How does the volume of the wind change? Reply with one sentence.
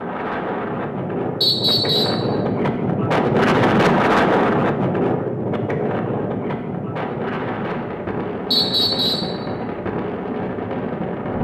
The loudness of the wind goes up, then down.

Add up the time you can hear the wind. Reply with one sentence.
The wind can be heard for 11 seconds in total.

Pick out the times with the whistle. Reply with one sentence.
You can hear the whistle from 1.4 to 2.2 s and from 8.5 to 9.3 s.